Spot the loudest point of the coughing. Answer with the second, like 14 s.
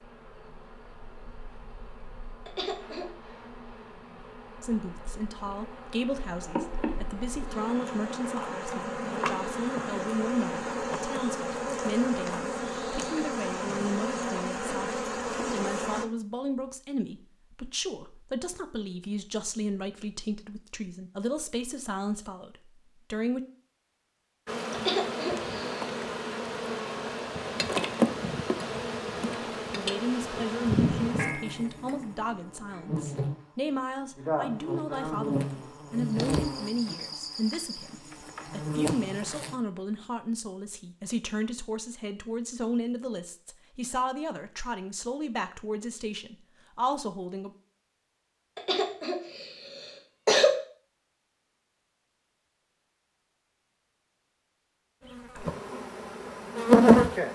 50 s.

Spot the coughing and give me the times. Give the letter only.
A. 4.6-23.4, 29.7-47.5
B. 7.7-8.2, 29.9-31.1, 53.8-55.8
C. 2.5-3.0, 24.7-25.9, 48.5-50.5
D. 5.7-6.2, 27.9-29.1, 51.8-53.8
C.